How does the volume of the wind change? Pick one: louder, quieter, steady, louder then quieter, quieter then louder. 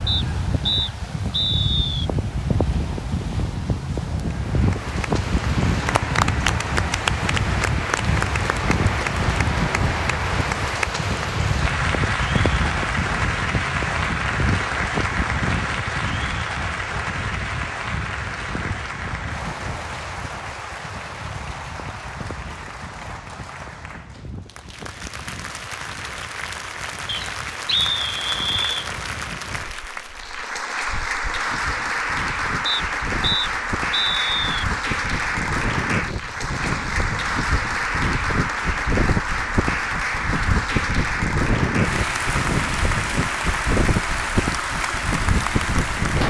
quieter then louder.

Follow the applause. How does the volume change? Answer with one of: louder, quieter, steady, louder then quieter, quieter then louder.
quieter then louder.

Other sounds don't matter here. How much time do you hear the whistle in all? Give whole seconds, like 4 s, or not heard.
6 s.